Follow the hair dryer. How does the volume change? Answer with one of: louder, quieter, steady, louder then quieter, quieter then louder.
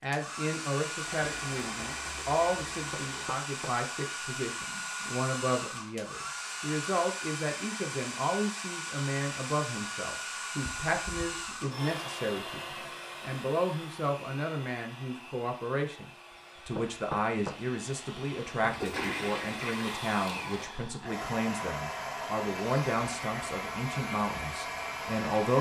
quieter then louder.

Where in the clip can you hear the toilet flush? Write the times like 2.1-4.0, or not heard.
1.0-3.5, 10.6-11.8, 18.7-20.7.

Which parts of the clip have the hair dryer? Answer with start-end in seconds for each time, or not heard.
0.0-25.5.